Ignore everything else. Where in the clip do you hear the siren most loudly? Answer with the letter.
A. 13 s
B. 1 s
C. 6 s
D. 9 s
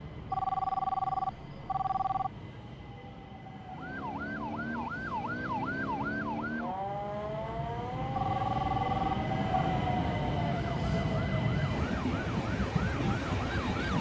C.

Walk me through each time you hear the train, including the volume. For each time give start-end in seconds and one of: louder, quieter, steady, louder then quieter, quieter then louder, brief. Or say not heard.
0.0-13.9 louder.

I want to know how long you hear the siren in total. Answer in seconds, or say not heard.
10 s.